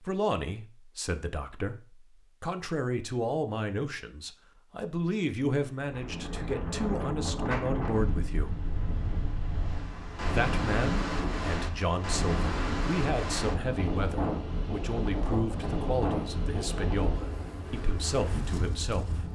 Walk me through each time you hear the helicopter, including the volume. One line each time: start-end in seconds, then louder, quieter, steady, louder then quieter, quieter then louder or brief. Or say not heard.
not heard.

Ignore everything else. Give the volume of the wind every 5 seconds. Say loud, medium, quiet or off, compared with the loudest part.
off, loud, loud, loud.